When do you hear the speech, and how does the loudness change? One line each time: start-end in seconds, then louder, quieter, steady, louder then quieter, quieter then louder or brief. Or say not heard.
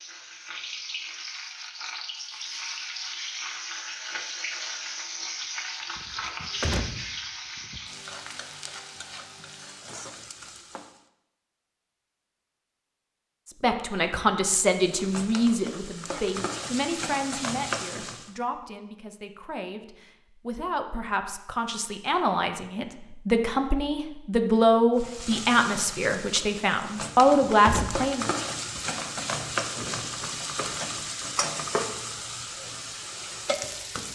13.6-28.3 quieter then louder.